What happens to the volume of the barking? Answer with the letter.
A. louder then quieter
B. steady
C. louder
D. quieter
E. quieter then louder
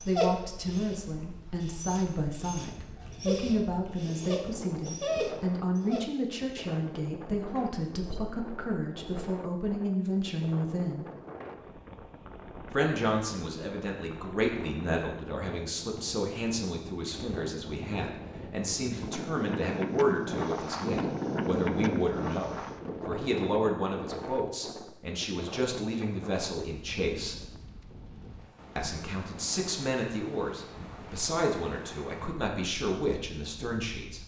C.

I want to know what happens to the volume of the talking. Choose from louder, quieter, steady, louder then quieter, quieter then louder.
steady.